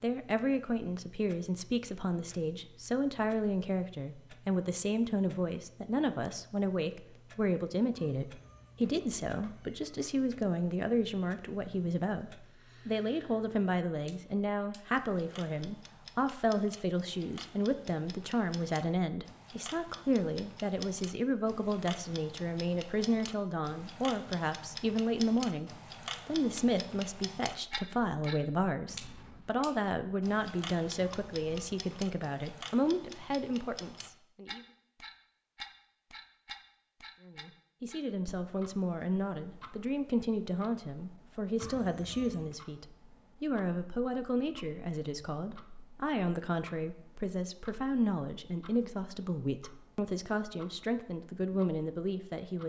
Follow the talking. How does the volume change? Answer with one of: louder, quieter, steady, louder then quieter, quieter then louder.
steady.